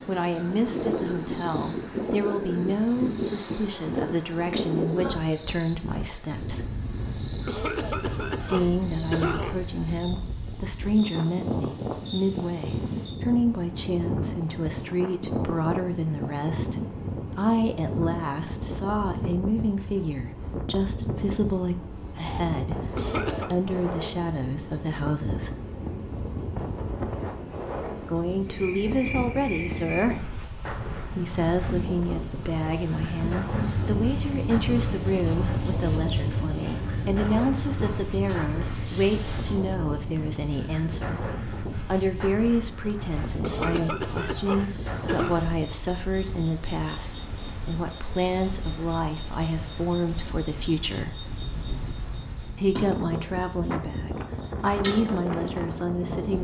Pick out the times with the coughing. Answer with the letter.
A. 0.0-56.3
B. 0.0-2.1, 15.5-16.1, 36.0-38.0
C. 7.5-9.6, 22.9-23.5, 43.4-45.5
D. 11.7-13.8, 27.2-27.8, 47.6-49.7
C.